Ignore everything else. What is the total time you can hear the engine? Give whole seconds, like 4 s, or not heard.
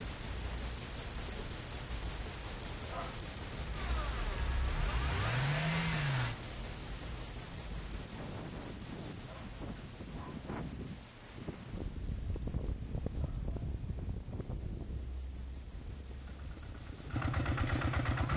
5 s.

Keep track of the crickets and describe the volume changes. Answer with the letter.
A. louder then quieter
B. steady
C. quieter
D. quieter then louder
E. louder
C.